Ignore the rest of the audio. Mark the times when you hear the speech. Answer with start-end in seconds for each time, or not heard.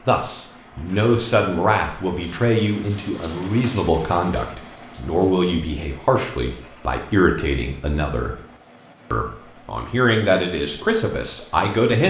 0.1-8.3, 9.1-12.0.